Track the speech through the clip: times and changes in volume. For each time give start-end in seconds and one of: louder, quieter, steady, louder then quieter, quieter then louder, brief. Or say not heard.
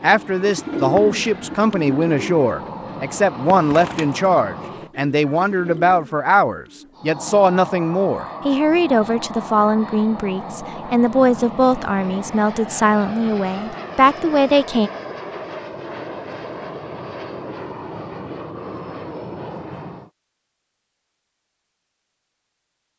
0.0-14.9 steady.